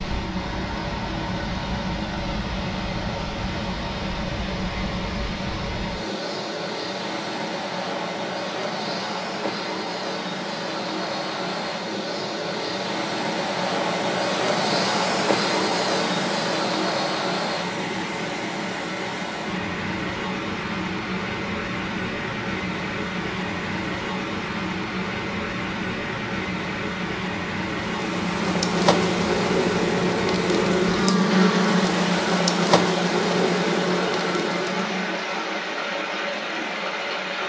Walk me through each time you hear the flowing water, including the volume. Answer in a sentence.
You can hear the flowing water from 0.0 to 37.4 s, at a steady volume.